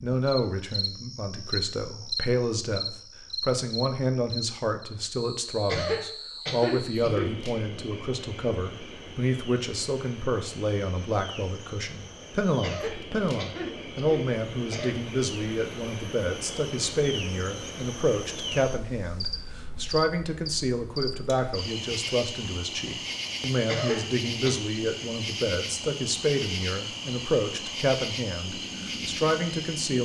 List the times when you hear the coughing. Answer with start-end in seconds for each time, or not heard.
5.7-7.3, 12.6-15.0, 23.6-24.6.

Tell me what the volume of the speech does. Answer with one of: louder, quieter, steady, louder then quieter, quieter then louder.
steady.